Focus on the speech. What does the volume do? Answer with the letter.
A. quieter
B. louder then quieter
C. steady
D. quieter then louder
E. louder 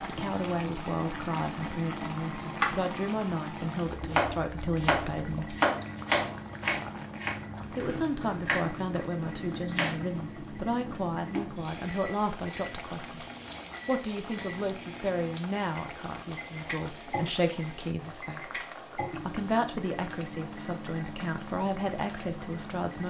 C.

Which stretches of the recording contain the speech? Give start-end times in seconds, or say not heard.
0.0-5.6, 7.7-13.2, 13.8-23.0.